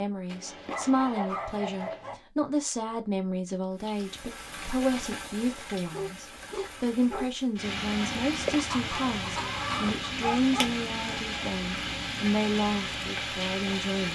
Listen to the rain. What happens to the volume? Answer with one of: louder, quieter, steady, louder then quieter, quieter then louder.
louder.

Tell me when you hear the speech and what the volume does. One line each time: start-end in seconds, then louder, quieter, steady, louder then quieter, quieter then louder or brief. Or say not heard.
0.0-14.0 steady.